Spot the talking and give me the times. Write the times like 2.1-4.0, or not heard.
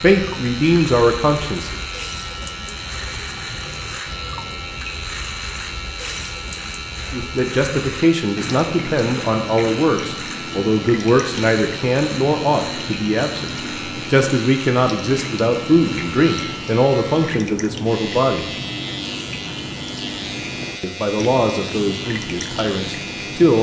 0.0-1.8, 7.1-18.5, 20.8-23.5.